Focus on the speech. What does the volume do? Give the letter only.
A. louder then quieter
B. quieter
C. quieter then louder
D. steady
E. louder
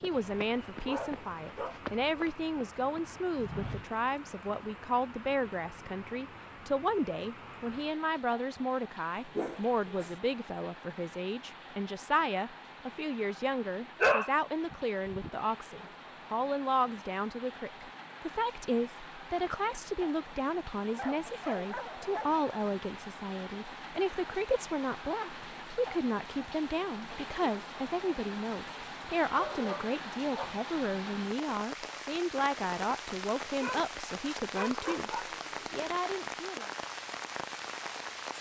D.